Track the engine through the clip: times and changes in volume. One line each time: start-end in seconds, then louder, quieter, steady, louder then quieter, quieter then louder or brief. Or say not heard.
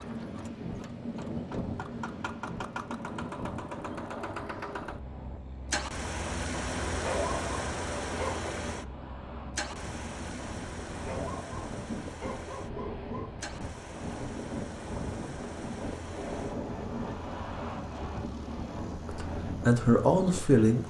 0.0-20.8 louder then quieter.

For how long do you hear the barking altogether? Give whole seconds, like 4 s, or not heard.
4 s.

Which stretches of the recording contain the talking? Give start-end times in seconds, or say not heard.
19.1-20.8.